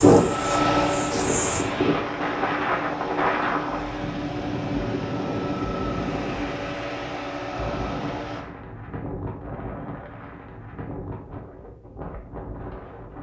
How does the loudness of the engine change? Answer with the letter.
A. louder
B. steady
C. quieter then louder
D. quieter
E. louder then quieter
D.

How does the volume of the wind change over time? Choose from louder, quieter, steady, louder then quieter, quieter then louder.
quieter.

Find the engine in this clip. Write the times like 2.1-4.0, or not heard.
0.0-8.4.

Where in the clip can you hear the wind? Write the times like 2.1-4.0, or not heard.
0.0-13.1.